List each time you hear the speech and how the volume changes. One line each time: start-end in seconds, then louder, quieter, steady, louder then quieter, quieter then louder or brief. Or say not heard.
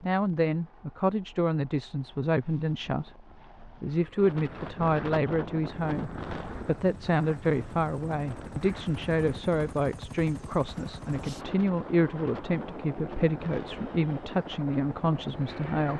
0.0-15.9 steady.